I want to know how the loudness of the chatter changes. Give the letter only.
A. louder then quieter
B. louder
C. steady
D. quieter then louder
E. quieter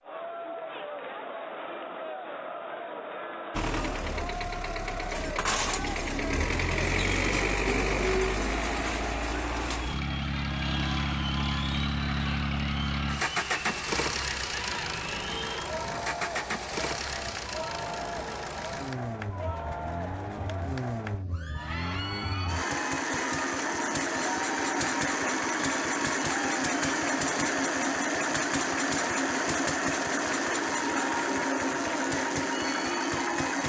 C.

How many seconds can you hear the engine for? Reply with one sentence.
You can hear the engine for 30 seconds altogether.